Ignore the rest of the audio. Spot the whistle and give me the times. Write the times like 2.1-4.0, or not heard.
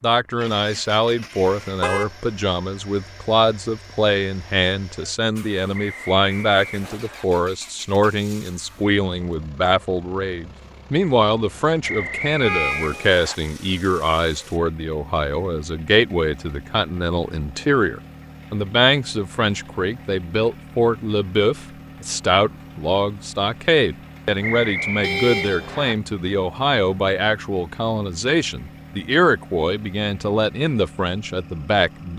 5.7-7.2, 11.8-13.3, 24.4-25.9.